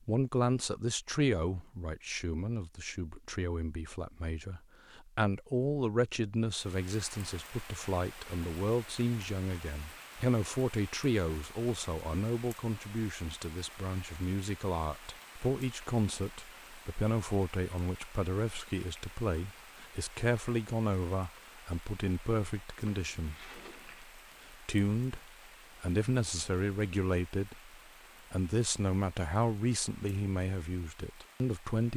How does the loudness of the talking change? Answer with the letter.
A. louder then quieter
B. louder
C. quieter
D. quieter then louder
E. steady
E.